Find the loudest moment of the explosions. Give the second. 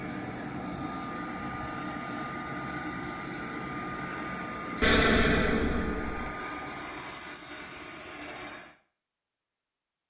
5 s.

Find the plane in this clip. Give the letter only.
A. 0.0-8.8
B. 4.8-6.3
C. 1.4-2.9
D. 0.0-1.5
A.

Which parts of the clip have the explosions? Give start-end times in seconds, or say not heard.
4.8-6.3.